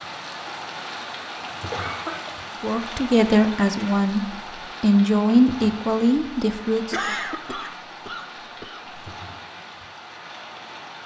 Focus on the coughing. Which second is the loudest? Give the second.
7 s.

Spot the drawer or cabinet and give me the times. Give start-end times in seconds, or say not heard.
not heard.